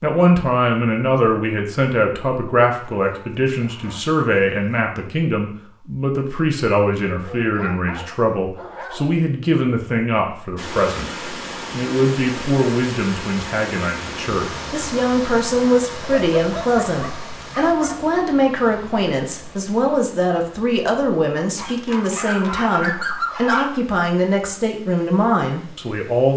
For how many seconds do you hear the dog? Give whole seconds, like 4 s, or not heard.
8 s.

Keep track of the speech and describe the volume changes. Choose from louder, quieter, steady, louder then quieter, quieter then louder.
steady.